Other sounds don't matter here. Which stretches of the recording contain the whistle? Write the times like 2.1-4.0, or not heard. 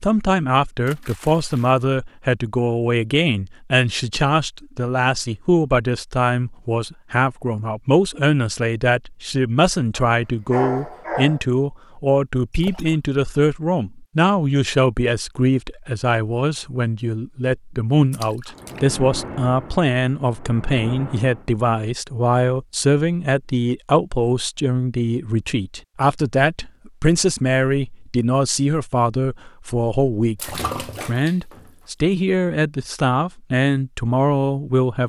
not heard.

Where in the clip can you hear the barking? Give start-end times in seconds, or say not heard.
9.9-11.4.